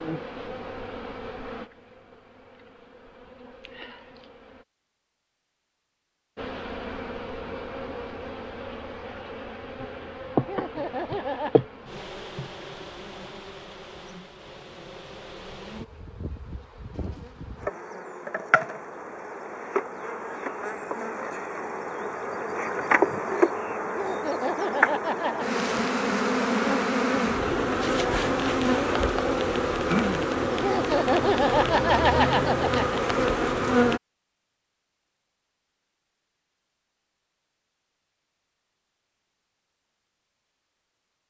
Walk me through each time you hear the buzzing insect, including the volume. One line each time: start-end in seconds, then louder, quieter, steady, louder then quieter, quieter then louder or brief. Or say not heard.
0.0-4.7 quieter then louder
6.3-34.0 quieter then louder.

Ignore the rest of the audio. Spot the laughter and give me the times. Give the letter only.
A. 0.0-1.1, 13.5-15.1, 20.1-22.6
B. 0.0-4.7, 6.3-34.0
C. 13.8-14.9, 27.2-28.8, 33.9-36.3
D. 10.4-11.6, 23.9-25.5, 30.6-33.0
D.